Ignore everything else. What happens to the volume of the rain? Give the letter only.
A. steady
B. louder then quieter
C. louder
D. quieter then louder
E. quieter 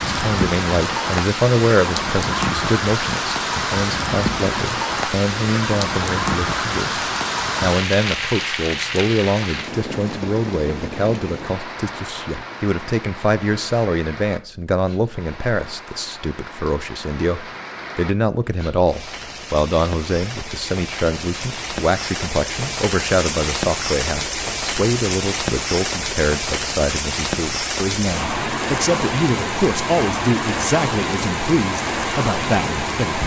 D.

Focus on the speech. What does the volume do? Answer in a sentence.
The volume of the speech stays about the same.